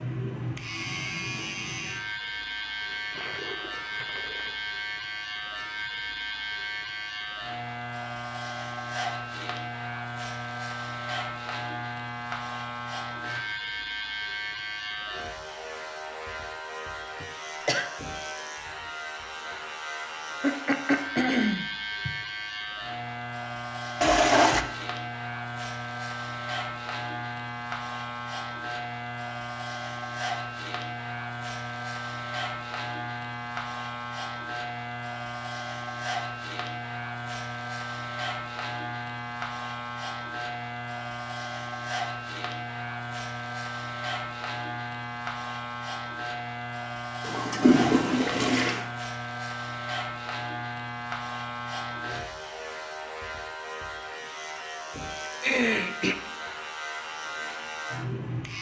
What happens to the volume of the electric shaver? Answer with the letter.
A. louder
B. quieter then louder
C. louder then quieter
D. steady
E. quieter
D.